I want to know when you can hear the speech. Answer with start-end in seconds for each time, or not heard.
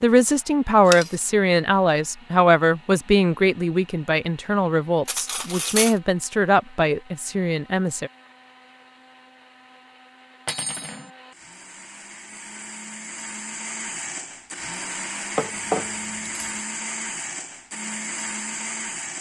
0.0-8.1.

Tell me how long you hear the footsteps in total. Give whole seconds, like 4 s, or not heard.
not heard.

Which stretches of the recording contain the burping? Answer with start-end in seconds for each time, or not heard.
not heard.